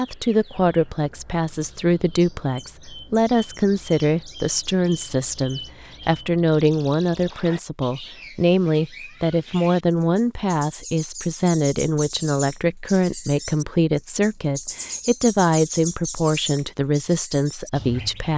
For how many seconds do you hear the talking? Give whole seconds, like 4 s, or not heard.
18 s.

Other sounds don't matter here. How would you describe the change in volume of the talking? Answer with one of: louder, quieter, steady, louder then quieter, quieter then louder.
steady.